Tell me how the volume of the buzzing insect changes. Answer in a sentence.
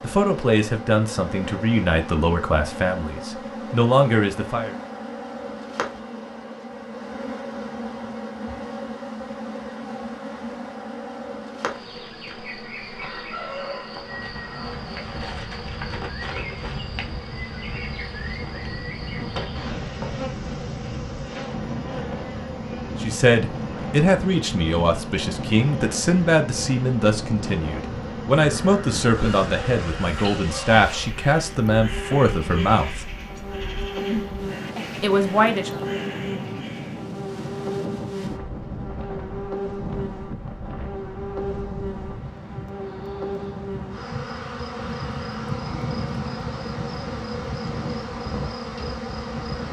The loudness of the buzzing insect stays about the same.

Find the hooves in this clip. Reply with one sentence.
The hooves can't be heard in this clip.